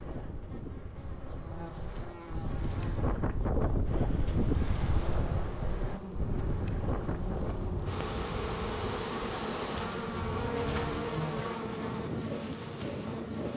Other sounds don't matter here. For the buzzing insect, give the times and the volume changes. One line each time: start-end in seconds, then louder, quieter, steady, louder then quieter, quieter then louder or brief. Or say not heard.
0.0-13.5 louder.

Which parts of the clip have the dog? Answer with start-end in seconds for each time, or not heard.
not heard.